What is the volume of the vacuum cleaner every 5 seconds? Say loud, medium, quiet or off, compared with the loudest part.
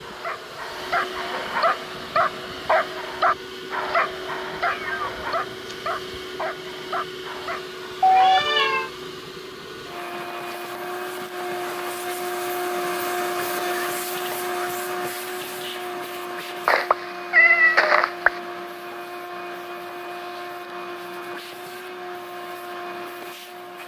medium, medium, loud, medium, medium.